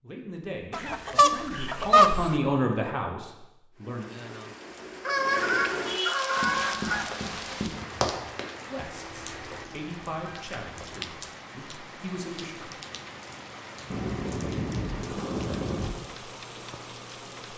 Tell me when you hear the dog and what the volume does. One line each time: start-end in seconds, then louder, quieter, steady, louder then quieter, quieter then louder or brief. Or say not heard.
not heard.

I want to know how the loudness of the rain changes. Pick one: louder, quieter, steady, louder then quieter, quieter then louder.
quieter.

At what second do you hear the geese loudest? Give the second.
2 s.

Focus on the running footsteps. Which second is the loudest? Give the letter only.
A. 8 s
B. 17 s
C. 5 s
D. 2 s
A.